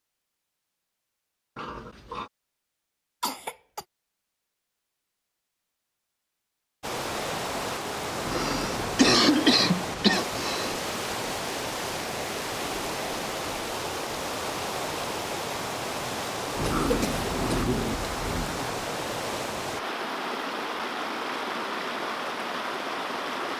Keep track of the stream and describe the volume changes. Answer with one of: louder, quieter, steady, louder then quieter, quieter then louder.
steady.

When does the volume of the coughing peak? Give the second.
9 s.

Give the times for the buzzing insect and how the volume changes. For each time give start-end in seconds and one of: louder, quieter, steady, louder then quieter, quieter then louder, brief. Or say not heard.
not heard.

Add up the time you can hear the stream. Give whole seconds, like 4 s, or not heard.
17 s.